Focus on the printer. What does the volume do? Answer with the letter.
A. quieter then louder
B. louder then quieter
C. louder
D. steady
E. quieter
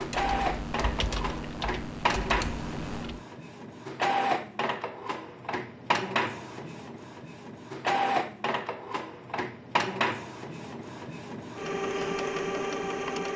D.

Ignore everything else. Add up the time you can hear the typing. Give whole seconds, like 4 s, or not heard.
3 s.